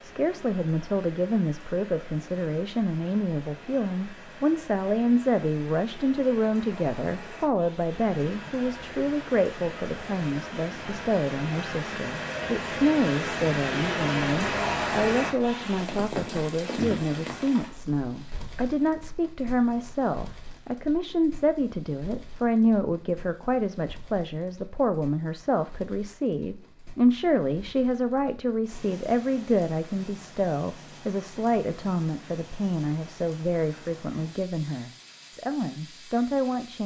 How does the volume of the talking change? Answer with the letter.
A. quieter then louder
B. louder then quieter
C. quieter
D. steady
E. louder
D.